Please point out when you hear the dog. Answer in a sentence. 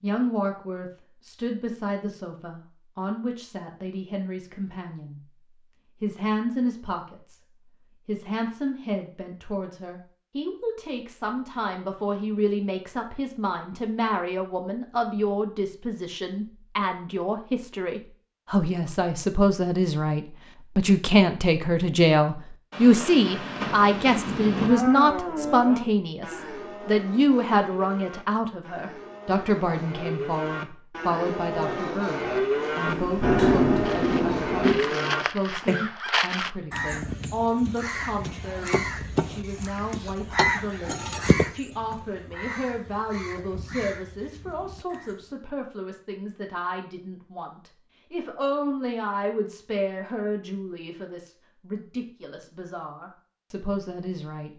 You can't hear the dog here.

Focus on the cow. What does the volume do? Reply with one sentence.
The volume of the cow goes down, then up.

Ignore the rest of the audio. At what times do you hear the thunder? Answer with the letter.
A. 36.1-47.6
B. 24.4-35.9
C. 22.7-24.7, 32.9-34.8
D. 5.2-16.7
C.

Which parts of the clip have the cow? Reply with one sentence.
The cow can be heard from 24.4 to 35.9 s.